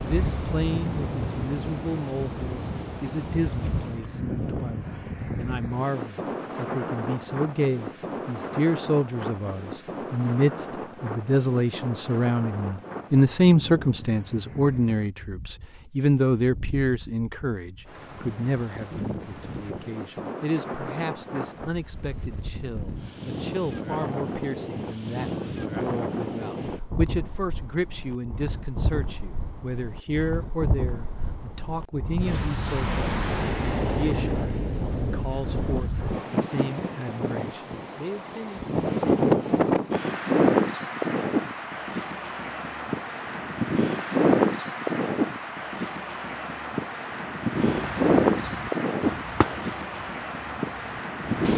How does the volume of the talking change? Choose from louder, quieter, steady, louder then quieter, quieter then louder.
louder then quieter.